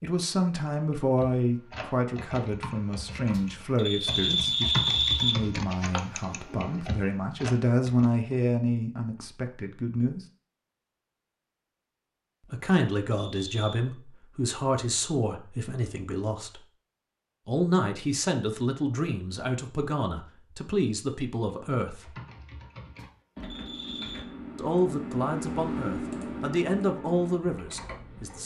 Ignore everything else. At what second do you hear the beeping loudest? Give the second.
5 s.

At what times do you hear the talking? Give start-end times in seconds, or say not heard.
0.0-10.2, 12.5-16.6, 17.4-22.1, 24.6-28.4.